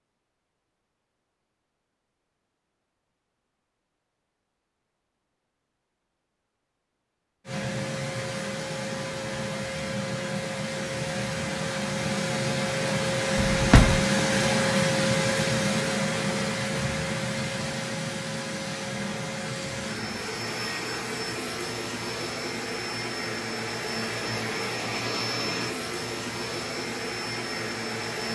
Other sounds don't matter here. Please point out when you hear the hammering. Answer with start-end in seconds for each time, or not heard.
not heard.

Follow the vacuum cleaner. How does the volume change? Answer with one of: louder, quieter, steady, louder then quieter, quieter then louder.
louder then quieter.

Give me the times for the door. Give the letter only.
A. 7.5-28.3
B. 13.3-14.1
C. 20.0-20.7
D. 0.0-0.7
B.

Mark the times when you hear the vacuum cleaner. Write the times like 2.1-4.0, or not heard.
7.5-28.3.